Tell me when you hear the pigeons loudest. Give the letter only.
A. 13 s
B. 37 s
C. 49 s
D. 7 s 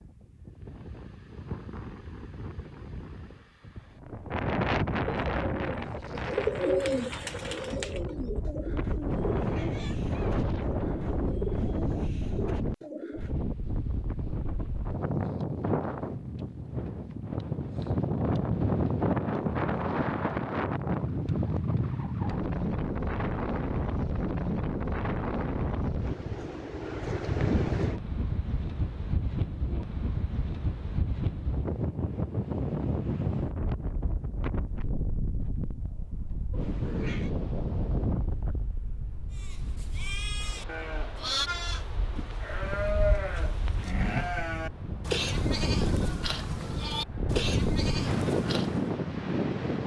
D.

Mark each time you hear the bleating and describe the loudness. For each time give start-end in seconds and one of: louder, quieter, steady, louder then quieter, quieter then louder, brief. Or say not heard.
39.3-49.0 steady.